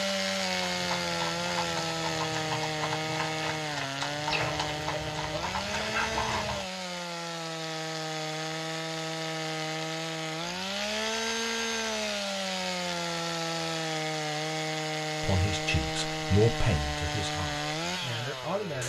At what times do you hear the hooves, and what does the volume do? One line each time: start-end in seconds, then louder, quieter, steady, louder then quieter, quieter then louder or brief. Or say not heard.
0.6-6.7 steady.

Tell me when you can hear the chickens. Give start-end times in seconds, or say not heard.
4.2-6.7.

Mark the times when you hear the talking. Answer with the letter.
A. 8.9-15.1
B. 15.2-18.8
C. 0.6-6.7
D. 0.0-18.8
B.